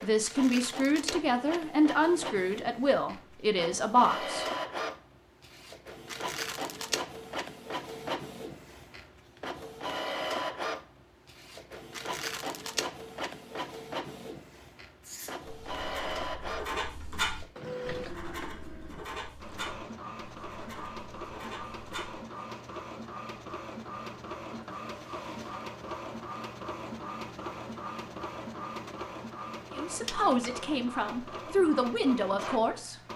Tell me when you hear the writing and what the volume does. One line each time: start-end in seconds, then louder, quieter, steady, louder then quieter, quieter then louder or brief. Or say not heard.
15.0-22.2 louder then quieter.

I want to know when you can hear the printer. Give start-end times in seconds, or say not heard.
0.0-33.1.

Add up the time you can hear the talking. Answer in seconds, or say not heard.
8 s.